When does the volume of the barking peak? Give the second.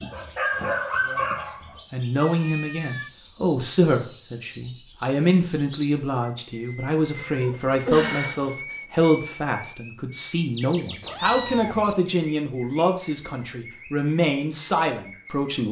1 s.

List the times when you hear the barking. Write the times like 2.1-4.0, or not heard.
0.0-1.8.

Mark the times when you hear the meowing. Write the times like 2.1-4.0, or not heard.
2.2-3.1, 7.2-8.6, 11.0-11.9.